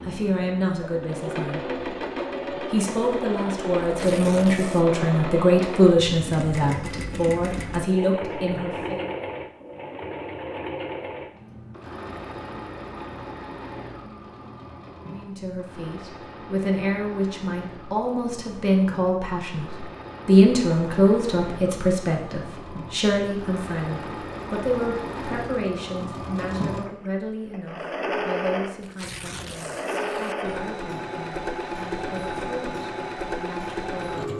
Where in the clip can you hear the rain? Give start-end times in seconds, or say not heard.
not heard.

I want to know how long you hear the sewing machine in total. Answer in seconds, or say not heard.
34 s.